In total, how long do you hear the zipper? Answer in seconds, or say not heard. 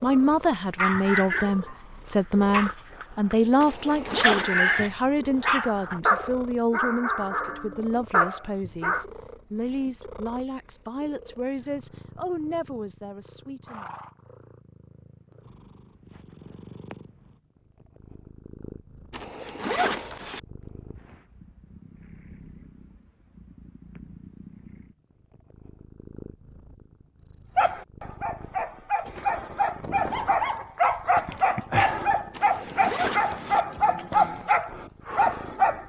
4 s.